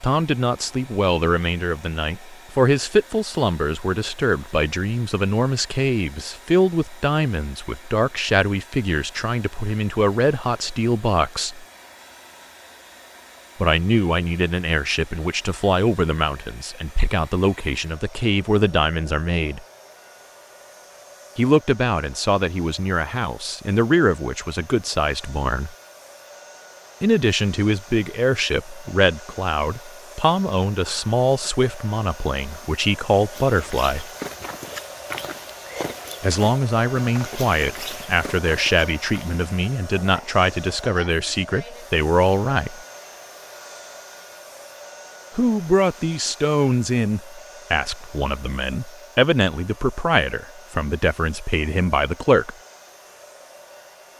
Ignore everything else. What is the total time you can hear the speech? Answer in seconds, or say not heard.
43 s.